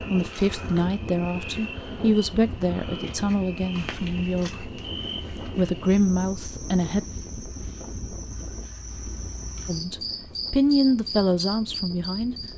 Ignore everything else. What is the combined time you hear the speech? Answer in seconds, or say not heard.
9 s.